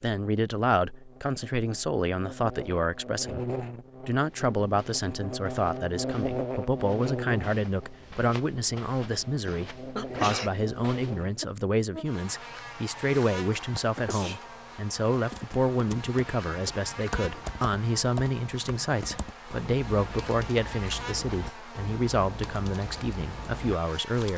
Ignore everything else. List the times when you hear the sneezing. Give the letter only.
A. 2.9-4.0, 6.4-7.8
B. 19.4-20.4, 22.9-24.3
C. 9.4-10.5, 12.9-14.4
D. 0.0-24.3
C.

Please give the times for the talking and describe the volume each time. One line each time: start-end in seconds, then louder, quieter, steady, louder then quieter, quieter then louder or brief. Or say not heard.
0.0-24.3 steady.